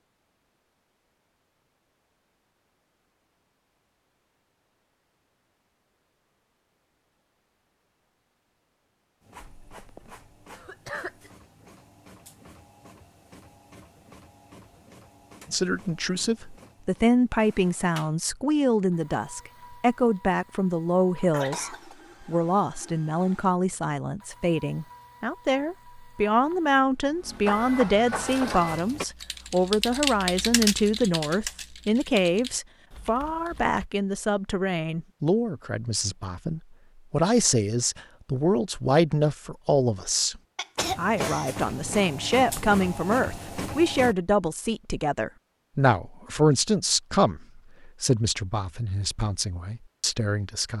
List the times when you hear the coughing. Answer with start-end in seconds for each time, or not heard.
9.4-11.3, 21.3-21.9, 40.5-41.5.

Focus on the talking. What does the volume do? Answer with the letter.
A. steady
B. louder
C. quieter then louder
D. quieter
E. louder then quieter
A.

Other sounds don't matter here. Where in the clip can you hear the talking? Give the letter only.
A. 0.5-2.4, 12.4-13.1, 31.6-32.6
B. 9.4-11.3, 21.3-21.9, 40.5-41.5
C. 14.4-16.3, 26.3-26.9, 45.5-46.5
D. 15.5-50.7
D.